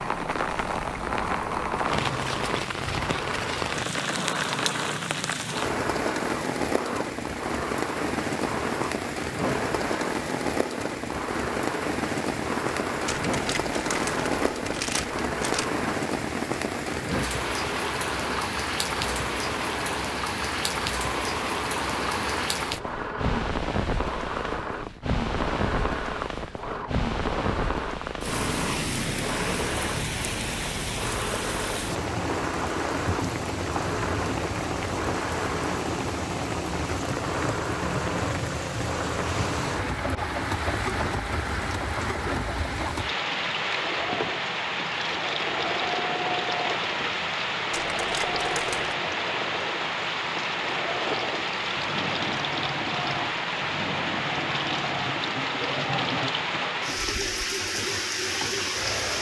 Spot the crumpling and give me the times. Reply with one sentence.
The crumpling can be heard from 13.1 to 15.7 s and from 47.7 to 49.0 s.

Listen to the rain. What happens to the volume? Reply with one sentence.
The volume of the rain stays about the same.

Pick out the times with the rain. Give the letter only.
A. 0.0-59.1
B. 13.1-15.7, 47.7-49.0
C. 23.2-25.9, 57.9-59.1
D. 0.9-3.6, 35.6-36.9
A.